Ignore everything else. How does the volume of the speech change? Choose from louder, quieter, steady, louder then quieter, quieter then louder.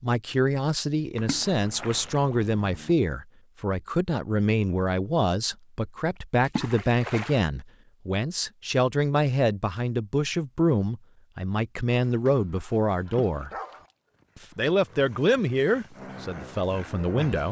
steady.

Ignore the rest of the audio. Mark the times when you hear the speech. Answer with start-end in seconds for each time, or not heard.
0.0-13.5, 14.3-17.4.